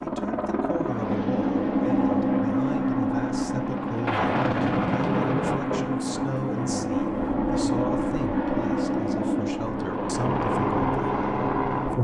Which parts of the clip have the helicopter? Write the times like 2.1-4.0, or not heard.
0.0-11.9.